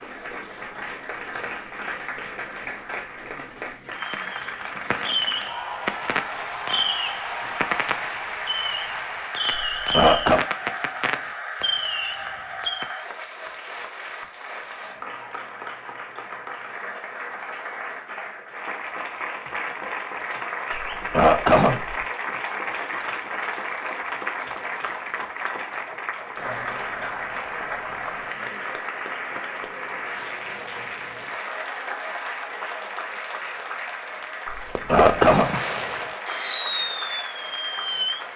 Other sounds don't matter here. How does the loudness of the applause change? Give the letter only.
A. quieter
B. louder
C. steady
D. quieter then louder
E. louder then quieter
C.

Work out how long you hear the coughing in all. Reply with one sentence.
You can hear the coughing for 3 seconds altogether.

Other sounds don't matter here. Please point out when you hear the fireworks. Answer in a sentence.
The fireworks can be heard from 4.0 to 12.9 s and from 34.8 to 38.2 s.